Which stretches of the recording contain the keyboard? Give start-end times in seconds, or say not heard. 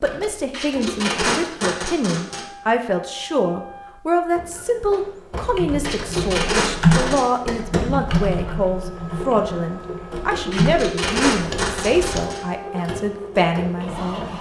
5.5-12.2.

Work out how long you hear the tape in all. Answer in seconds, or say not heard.
5 s.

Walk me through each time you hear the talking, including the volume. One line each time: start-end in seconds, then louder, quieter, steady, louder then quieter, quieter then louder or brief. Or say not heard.
0.0-14.3 steady.